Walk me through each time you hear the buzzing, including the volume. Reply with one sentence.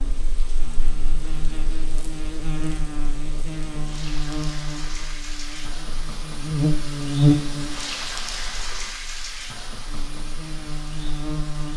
The buzzing can be heard from 0.2 to 11.7 s, getting louder then quieter.